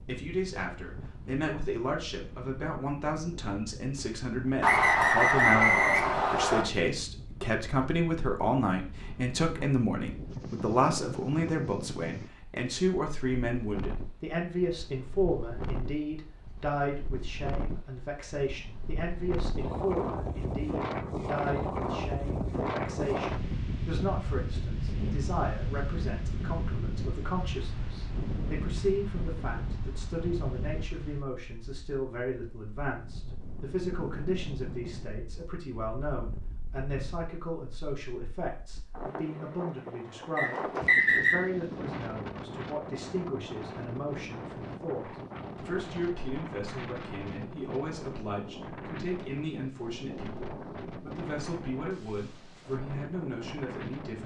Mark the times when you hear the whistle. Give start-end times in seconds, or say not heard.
4.6-6.7, 40.4-41.4.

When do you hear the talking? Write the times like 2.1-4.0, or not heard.
0.0-54.2.